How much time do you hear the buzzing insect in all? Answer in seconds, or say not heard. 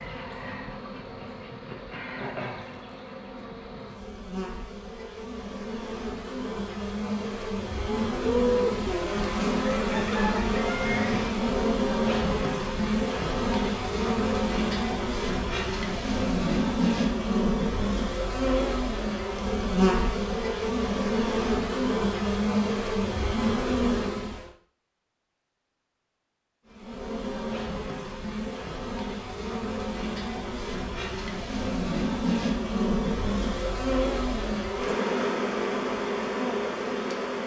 35 s.